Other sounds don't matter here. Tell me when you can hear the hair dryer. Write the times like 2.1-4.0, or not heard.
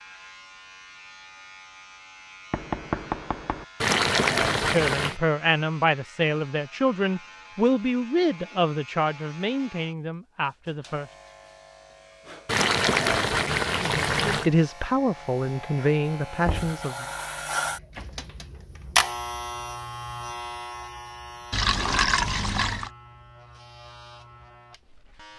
not heard.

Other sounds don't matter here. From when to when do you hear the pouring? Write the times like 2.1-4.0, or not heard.
3.8-5.2, 12.4-14.5, 21.5-22.9.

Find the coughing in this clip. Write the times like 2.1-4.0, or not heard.
not heard.